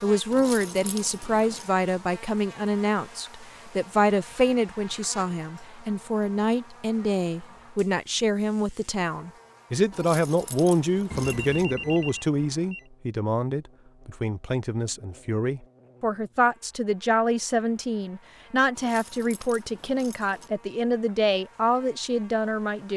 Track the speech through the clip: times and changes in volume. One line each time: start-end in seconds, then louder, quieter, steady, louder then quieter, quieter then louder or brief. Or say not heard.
0.0-22.9 steady.